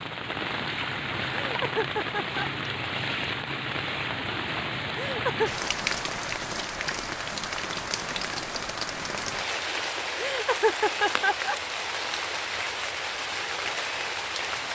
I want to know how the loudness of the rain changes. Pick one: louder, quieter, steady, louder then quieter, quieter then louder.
steady.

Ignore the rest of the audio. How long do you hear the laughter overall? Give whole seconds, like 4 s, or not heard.
3 s.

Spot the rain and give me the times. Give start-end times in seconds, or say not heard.
0.0-14.6.